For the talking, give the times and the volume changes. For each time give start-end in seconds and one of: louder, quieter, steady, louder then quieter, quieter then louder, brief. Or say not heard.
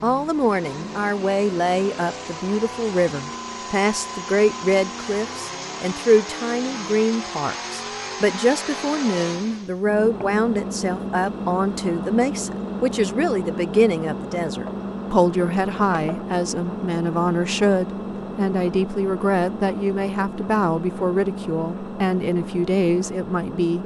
0.0-23.8 steady.